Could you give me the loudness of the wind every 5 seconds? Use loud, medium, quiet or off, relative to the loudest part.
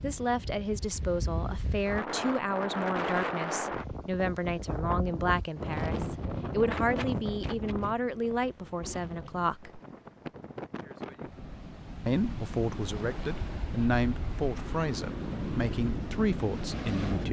loud, loud, medium, loud.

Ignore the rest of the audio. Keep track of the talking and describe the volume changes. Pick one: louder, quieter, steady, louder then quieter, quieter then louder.
steady.